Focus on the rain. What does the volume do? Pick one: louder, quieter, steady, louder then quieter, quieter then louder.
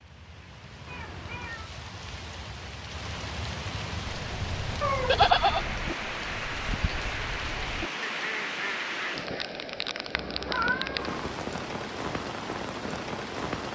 louder.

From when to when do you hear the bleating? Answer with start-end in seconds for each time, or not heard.
5.0-7.1.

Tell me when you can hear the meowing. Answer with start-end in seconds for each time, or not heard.
0.8-1.7, 4.8-5.2, 10.2-11.2.